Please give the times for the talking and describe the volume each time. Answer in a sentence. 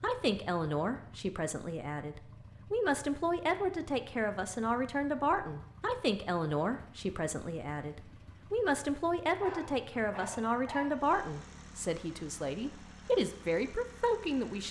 You can hear the talking from 0.0 to 14.6 s, at a steady volume.